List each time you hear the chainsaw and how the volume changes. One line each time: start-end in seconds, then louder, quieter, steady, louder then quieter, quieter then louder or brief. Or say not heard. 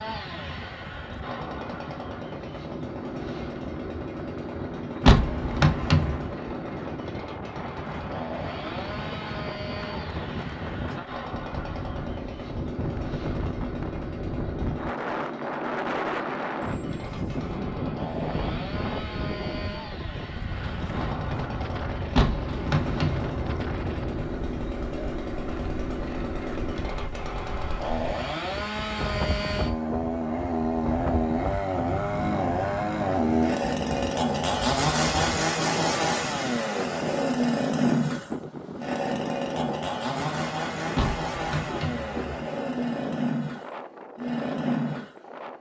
0.0-45.5 louder.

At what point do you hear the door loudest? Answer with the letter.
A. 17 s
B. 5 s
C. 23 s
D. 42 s
B.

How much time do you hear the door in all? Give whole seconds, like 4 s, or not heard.
4 s.